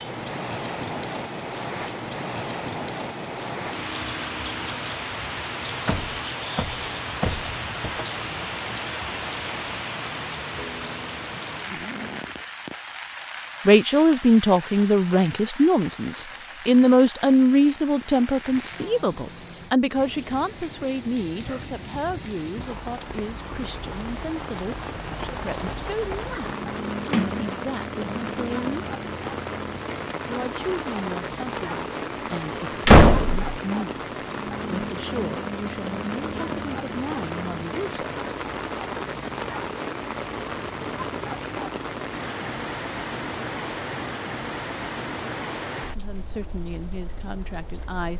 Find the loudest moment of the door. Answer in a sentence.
The volume of the door peaks at 33 seconds.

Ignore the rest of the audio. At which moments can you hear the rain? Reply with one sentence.
You can hear the rain from 0.0 to 48.1 s.